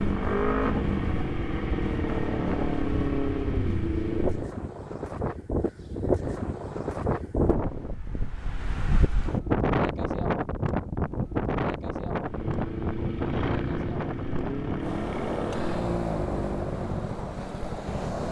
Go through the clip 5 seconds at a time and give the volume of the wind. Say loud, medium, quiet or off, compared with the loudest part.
medium, loud, loud, medium.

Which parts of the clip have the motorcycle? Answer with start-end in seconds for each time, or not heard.
0.0-4.5, 12.2-18.2.